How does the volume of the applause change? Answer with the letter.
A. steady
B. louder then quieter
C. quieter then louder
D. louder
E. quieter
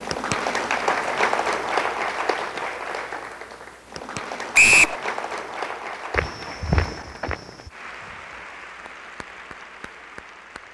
E.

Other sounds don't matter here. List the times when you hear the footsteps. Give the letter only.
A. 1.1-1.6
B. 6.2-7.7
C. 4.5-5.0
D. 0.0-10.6
B.